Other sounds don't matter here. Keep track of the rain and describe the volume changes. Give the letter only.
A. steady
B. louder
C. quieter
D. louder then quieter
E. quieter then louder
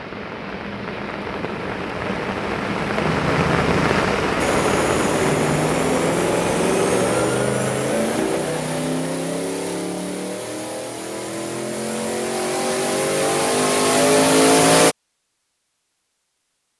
D.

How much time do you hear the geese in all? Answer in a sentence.
The geese can't be heard in this clip.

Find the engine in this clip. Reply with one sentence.
The engine can be heard from 3.0 to 14.9 s.